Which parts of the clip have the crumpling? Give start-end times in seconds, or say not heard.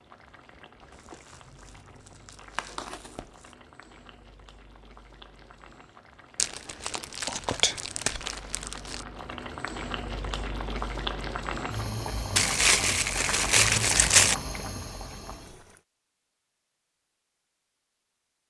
1.1-3.3, 6.3-9.1, 12.3-14.3.